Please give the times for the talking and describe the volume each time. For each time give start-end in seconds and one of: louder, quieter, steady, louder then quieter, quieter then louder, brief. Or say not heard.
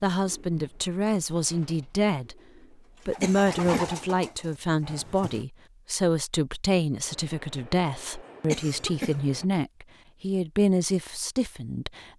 0.0-2.4 brief
3.0-12.1 steady.